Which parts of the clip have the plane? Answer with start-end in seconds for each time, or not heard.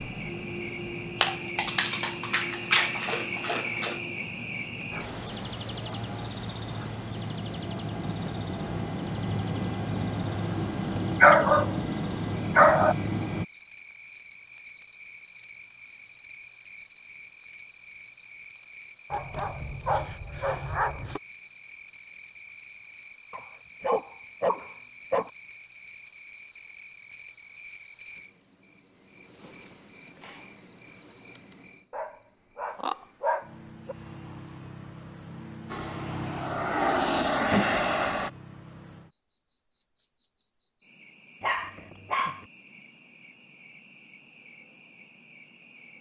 0.0-13.4, 35.7-38.3.